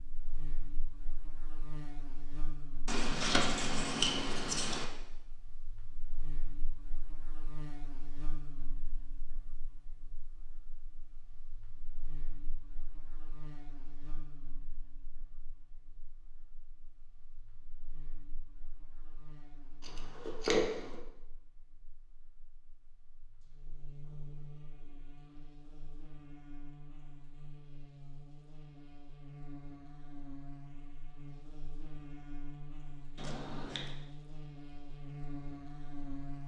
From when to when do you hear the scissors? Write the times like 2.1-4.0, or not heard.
2.9-4.8, 19.8-20.9, 33.1-34.0.